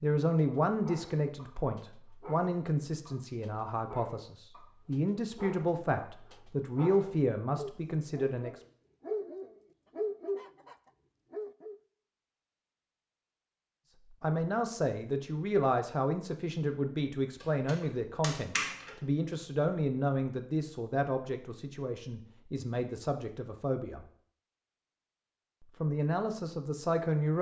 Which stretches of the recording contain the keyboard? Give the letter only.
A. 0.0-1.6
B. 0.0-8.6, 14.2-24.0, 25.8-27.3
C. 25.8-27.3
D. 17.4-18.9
D.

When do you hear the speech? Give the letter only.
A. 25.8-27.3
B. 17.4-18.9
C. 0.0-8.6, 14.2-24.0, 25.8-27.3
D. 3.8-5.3
C.